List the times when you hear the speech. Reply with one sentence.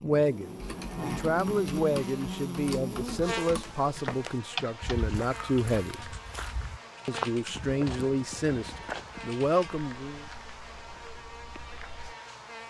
You can hear the speech from 0.0 to 6.2 s and from 7.0 to 10.2 s.